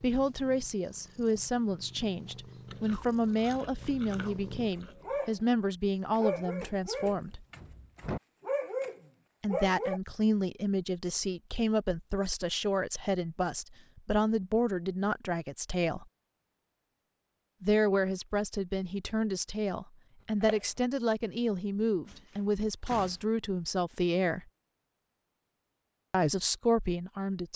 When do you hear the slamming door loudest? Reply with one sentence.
The loudest moment of the slamming door is at 8 seconds.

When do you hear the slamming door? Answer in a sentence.
You can hear the slamming door from 7.2 to 8.2 s and from 22.1 to 23.2 s.